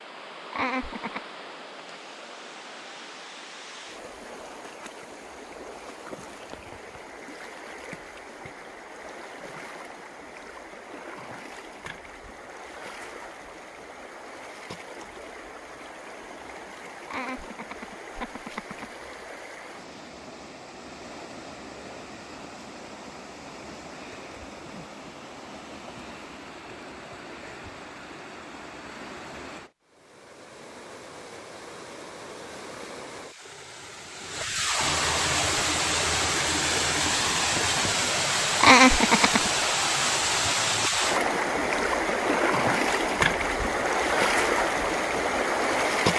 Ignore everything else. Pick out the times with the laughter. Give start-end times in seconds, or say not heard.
0.5-1.2, 17.1-18.9, 38.6-39.5.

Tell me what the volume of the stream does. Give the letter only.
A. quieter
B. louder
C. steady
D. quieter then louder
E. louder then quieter
B.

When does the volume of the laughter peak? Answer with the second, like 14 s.
39 s.